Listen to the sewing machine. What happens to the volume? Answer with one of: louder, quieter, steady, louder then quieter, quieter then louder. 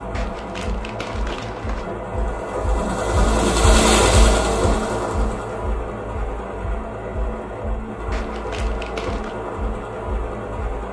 louder then quieter.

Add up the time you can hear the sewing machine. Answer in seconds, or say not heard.
11 s.